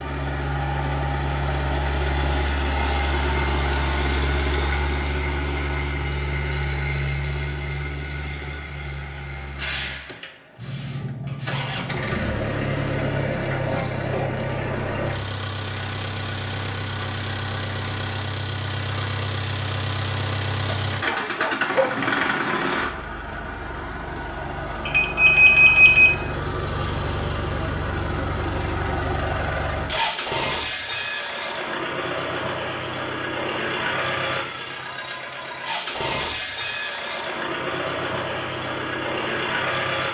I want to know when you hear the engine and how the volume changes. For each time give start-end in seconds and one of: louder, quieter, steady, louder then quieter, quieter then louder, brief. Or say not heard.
0.0-40.1 steady.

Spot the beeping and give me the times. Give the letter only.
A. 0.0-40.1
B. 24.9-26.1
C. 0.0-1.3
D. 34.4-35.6
B.